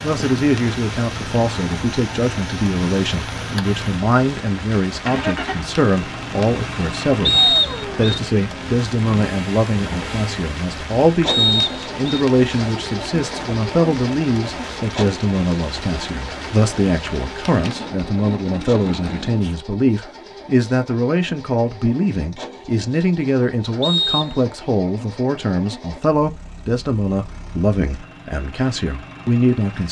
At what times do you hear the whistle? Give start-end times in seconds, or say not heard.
7.2-8.2, 11.2-12.0, 23.8-24.5.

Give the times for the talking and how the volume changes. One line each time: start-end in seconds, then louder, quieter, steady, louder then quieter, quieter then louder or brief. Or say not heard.
0.0-29.8 steady.